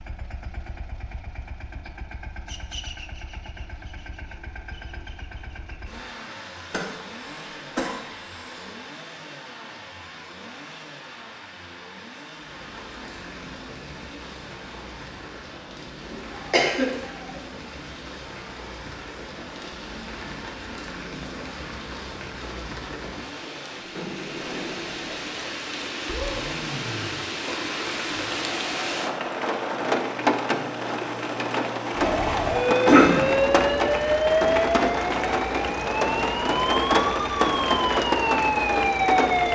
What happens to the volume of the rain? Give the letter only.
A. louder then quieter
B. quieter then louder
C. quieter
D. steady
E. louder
E.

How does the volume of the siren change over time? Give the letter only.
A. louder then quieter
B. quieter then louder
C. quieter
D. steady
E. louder
B.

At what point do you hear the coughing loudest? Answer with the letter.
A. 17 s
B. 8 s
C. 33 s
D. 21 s
C.